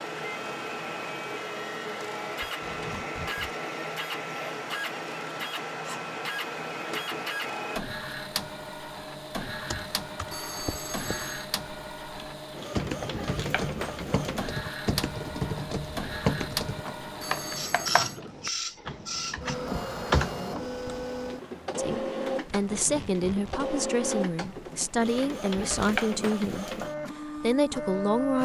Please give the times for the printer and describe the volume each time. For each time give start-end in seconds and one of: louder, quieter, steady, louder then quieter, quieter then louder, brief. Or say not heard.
0.0-28.4 steady.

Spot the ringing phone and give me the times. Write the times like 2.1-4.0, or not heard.
10.3-11.5, 17.2-18.2.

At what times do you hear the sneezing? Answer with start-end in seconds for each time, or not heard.
not heard.